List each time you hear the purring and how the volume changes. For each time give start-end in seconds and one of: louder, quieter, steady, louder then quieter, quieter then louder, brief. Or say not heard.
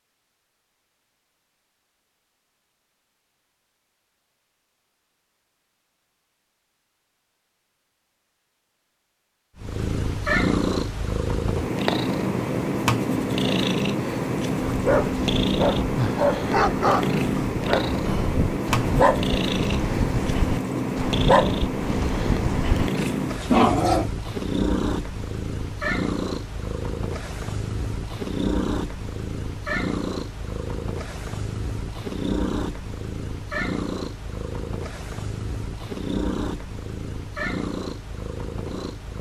9.6-39.1 quieter.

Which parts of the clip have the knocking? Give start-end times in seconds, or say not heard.
not heard.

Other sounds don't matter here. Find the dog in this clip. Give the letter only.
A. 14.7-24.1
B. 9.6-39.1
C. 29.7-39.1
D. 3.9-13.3
A.